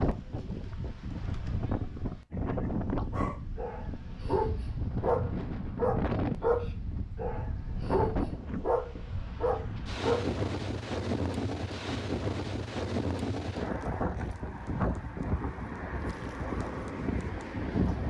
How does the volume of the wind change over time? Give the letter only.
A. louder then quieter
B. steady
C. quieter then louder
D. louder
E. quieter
B.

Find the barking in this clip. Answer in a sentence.
The barking can be heard from 3.1 to 10.2 s.